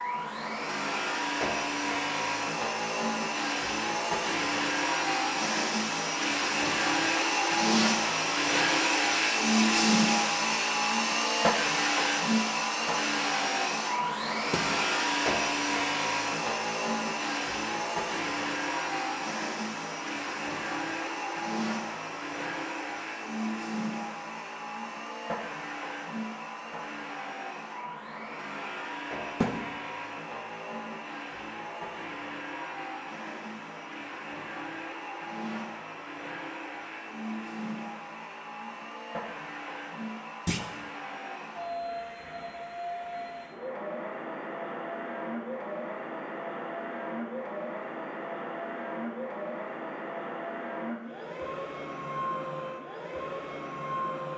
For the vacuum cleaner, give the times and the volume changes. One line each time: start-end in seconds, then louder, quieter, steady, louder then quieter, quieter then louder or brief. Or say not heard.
0.0-54.3 quieter.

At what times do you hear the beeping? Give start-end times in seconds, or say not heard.
not heard.